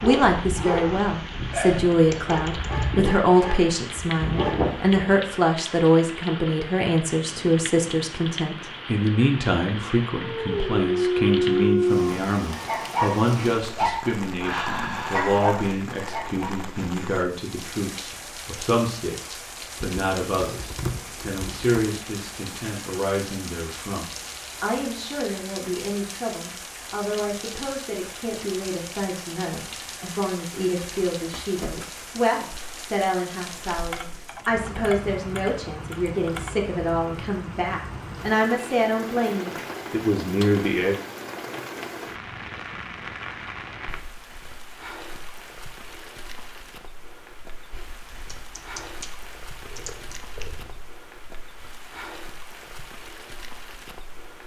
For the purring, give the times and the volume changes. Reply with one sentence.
You can't hear the purring here.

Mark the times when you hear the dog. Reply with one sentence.
You can hear the dog from 0.0 to 5.2 s and from 10.2 to 16.6 s.